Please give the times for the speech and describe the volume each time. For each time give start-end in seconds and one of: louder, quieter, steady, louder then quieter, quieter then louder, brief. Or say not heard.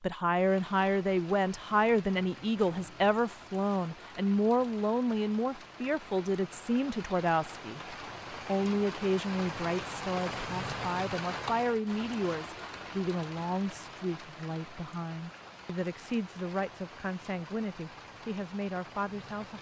0.0-19.5 quieter.